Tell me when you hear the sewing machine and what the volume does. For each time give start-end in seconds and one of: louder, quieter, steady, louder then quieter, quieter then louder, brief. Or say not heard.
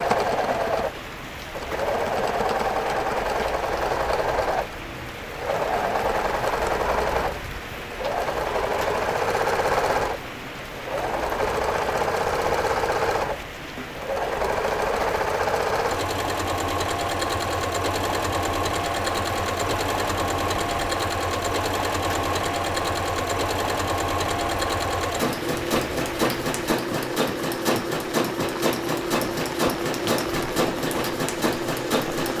0.0-32.3 steady.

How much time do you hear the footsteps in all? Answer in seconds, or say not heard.
not heard.